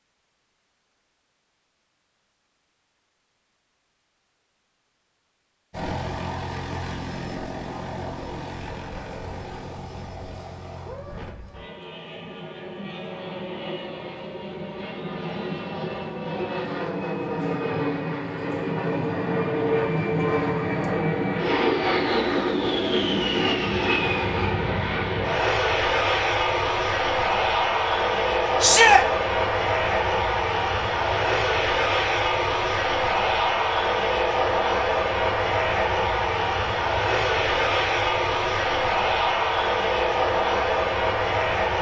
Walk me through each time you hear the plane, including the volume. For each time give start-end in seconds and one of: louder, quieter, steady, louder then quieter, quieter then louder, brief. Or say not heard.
5.7-41.7 louder.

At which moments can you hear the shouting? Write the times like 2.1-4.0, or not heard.
28.6-29.1.